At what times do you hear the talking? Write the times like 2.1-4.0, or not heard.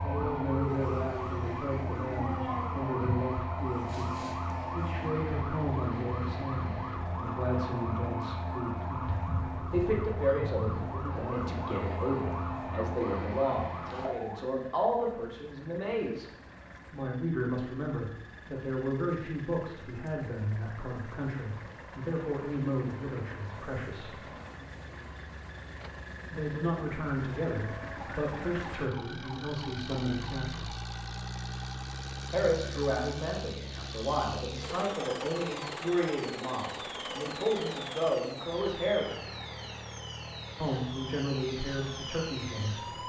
0.0-16.3, 16.9-24.1, 26.3-30.7, 32.3-39.2, 40.6-42.8.